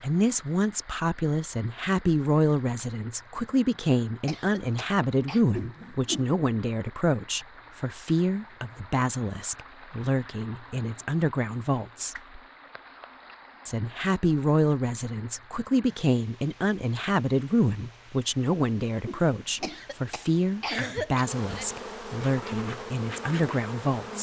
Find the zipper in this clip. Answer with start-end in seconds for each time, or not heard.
not heard.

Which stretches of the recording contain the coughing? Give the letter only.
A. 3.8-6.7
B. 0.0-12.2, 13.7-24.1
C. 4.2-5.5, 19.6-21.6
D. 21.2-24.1
C.